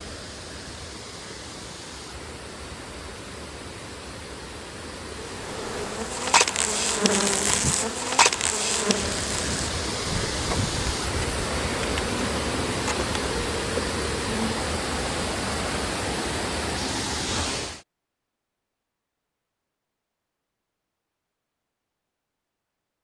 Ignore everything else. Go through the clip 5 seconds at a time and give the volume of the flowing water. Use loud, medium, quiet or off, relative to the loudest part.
medium, medium, loud, loud, off.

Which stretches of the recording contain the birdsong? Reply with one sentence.
You can't hear the birdsong here.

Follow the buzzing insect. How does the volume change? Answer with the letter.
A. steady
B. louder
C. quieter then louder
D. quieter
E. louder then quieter
D.